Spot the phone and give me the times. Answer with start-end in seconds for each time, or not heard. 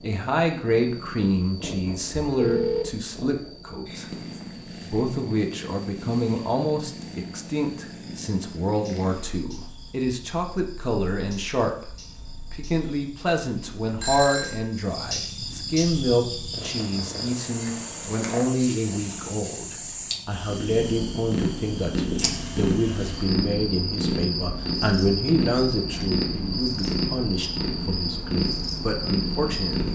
2.1-3.0, 14.0-14.7, 22.2-23.4.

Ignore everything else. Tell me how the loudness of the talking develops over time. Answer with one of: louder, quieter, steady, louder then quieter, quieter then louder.
steady.